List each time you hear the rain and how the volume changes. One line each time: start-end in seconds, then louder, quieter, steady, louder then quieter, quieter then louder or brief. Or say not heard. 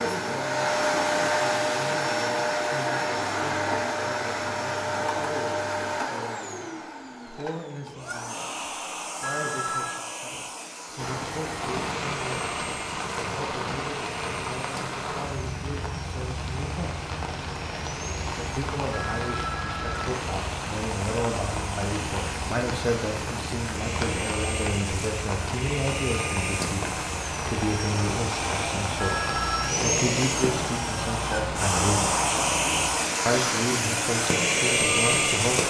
10.9-35.6 steady.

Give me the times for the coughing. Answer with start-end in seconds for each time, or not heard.
not heard.